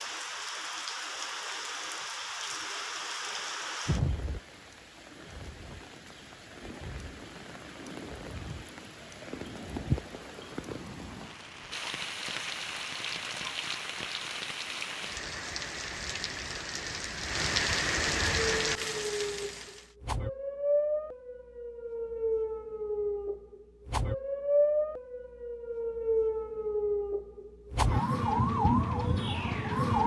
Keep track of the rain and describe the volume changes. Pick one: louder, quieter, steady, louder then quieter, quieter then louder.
quieter then louder.